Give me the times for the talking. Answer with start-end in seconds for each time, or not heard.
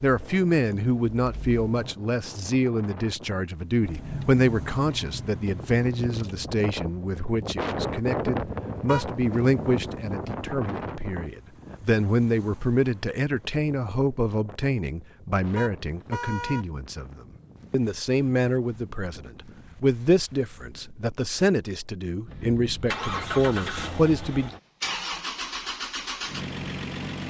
0.0-24.5.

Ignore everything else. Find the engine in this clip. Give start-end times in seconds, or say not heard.
0.1-1.9, 3.8-6.5, 22.2-27.2.